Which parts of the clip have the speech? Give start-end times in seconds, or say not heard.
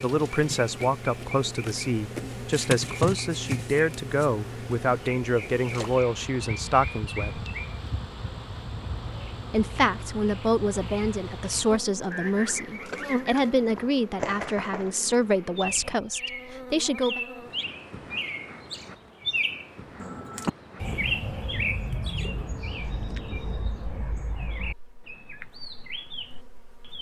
0.0-7.4, 9.5-17.2.